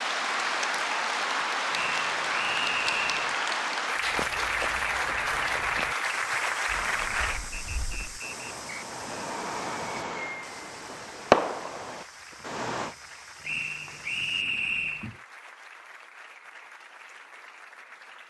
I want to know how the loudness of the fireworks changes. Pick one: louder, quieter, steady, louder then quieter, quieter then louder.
louder then quieter.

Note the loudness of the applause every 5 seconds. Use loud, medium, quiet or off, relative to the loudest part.
loud, loud, quiet, quiet.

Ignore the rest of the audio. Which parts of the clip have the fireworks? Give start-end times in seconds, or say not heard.
6.7-12.9.